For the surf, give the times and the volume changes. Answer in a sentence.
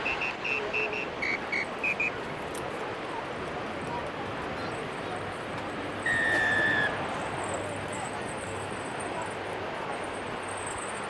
The surf can be heard from 0.0 to 11.0 s, at a steady volume.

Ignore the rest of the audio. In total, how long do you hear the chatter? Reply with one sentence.
The chatter can be heard for 11 seconds in total.